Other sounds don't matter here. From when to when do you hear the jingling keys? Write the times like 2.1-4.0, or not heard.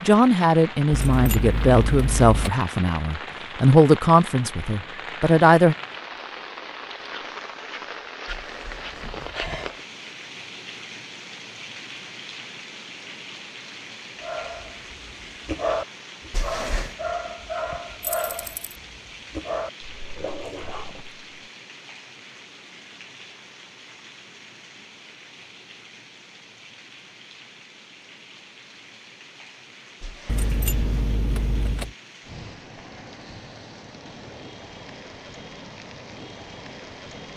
0.9-2.5, 18.0-18.7, 30.2-31.9.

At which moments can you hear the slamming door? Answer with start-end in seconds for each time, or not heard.
8.2-9.8, 16.3-16.9, 30.0-31.1.